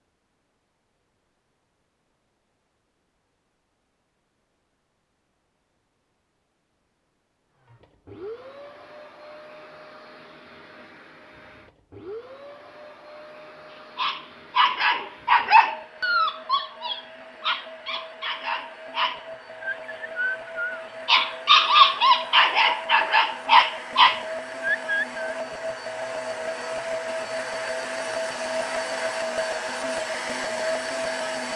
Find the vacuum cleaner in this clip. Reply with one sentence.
The vacuum cleaner can be heard from 7.5 to 31.5 s.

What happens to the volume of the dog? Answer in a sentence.
The volume of the dog goes down, then up.